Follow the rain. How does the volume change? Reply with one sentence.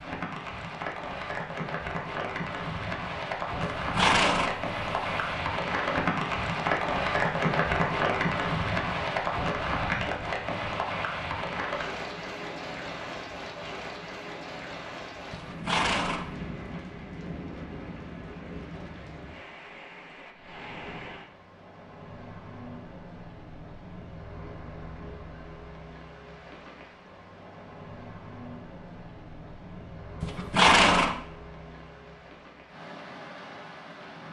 The loudness of the rain goes down.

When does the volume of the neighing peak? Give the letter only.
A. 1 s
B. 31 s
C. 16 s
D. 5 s
B.